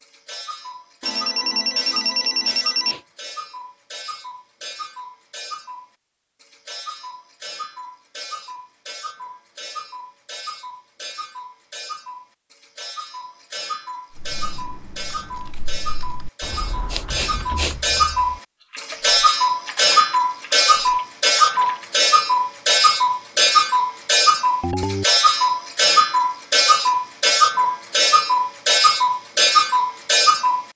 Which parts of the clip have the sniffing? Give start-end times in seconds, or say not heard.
2.1-3.0, 16.9-17.8.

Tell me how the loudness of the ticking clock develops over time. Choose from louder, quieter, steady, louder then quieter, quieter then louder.
louder.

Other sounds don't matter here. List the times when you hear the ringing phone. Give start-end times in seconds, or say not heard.
1.0-3.0, 24.6-25.1.